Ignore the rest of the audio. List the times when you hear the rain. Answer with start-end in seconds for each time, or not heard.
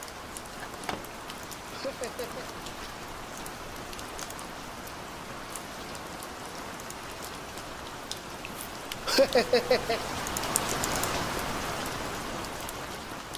0.0-13.3.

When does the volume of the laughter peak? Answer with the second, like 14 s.
9 s.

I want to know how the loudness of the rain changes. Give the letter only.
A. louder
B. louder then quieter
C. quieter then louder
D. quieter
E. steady
A.